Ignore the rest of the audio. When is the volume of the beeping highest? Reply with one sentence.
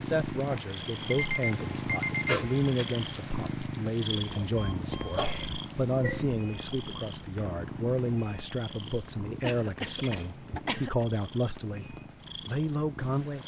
The volume of the beeping peaks at 2 seconds.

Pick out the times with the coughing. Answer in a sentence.
The coughing can be heard from 2.2 to 2.9 s, from 4.9 to 6.3 s and from 9.4 to 11.1 s.